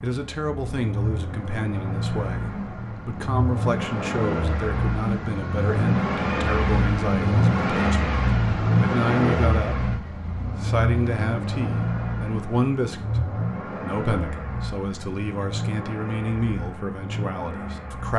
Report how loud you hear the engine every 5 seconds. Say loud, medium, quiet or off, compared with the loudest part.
medium, loud, medium, medium.